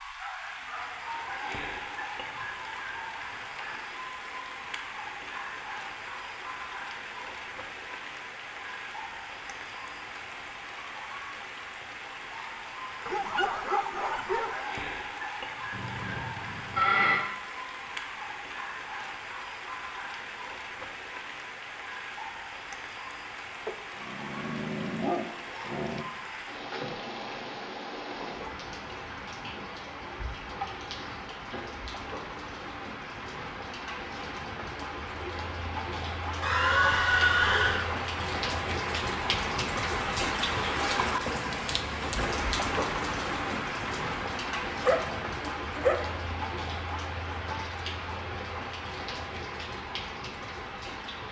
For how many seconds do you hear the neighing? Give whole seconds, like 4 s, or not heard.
3 s.